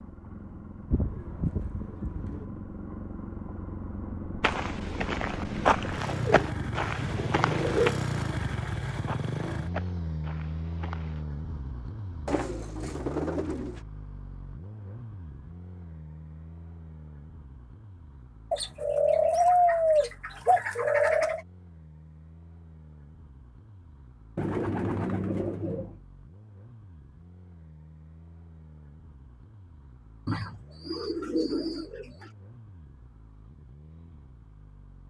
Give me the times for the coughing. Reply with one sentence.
The coughing can't be heard in this clip.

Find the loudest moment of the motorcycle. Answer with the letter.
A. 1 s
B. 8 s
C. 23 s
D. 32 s
B.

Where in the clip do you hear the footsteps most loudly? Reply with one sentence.
The volume of the footsteps peaks at 6 seconds.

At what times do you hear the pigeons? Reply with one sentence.
The pigeons can be heard from 0.9 to 2.5 s, from 6.1 to 8.0 s, from 12.2 to 13.8 s, from 18.5 to 21.4 s, from 24.4 to 26.0 s and from 30.2 to 32.3 s.